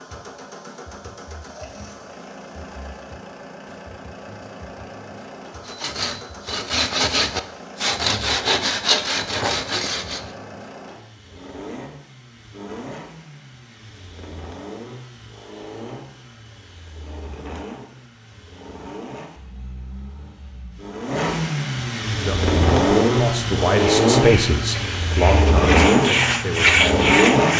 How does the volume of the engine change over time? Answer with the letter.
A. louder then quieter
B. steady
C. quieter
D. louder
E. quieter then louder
D.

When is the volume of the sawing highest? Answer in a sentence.
The volume of the sawing peaks at 27 seconds.